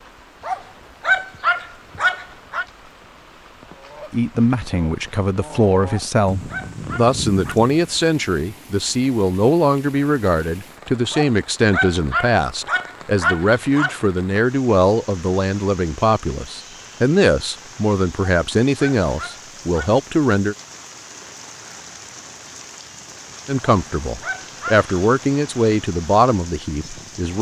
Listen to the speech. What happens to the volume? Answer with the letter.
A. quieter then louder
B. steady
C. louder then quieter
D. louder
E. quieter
B.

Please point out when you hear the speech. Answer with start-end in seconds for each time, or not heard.
4.1-20.6, 23.4-27.3.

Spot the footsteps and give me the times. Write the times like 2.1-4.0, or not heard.
not heard.